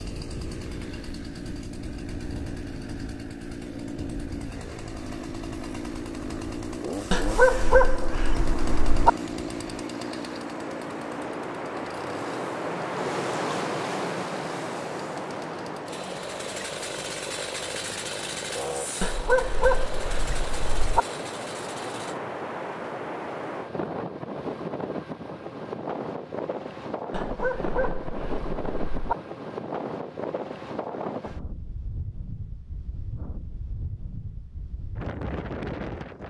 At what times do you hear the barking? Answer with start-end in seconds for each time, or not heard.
7.1-9.1, 19.0-21.0, 27.1-29.1.